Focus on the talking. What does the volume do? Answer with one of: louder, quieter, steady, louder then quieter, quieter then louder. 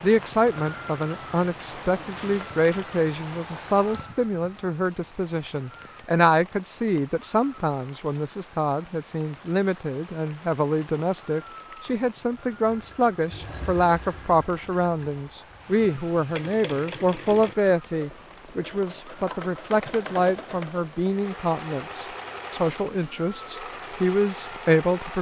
steady.